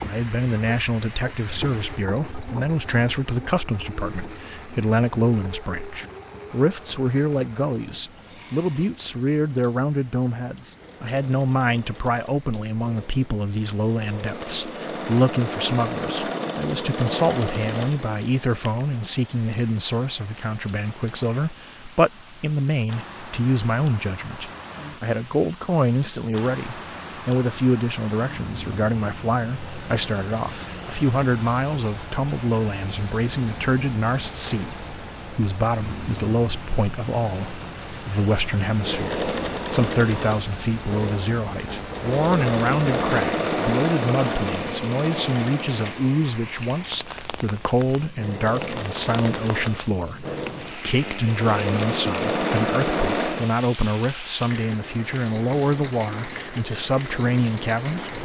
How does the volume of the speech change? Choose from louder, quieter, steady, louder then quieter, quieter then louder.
steady.